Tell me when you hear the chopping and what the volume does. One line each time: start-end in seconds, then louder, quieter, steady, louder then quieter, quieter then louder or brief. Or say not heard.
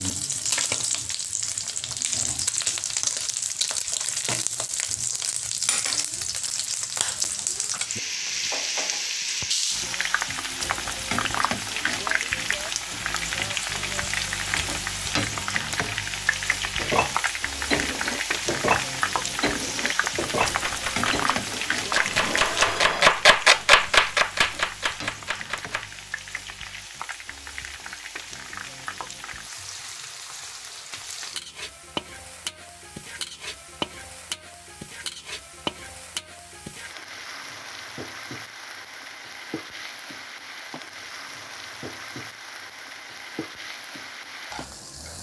20.4-26.0 louder then quieter.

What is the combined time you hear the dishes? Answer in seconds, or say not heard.
6 s.